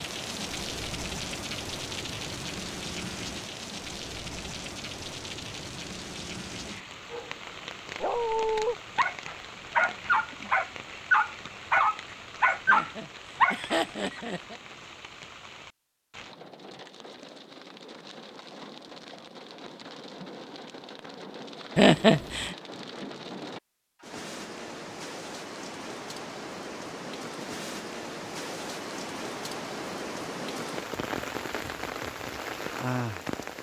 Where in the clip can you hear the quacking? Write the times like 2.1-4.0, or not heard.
not heard.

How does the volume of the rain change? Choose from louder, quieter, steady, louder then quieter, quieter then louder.
quieter then louder.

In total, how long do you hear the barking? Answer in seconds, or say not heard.
7 s.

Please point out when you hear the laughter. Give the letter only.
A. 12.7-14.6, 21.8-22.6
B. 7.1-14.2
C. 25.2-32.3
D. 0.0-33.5
A.